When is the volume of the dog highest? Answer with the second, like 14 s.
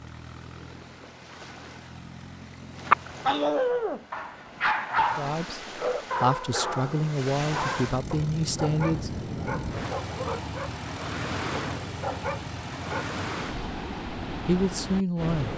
3 s.